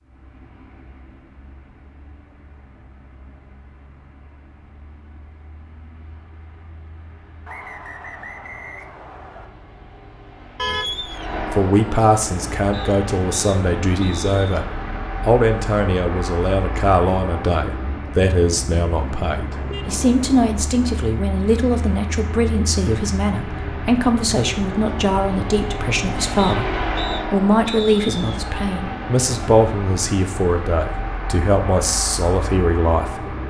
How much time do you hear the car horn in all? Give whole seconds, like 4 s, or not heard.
3 s.